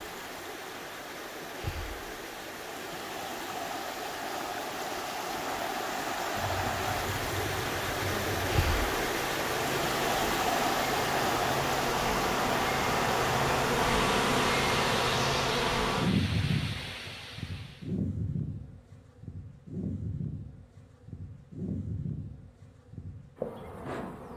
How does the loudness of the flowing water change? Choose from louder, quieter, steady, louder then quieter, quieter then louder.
louder then quieter.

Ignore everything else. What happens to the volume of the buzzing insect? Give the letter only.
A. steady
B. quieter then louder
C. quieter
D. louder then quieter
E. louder
D.